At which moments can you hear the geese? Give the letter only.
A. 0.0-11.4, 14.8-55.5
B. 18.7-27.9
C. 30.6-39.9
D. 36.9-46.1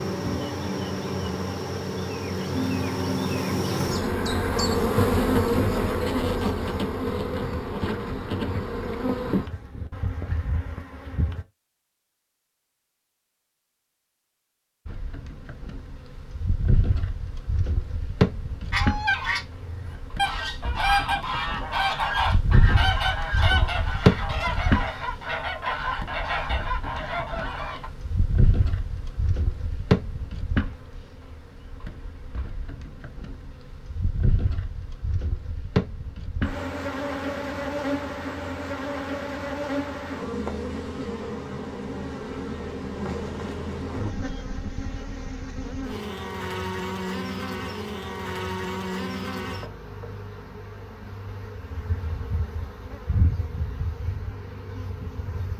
B.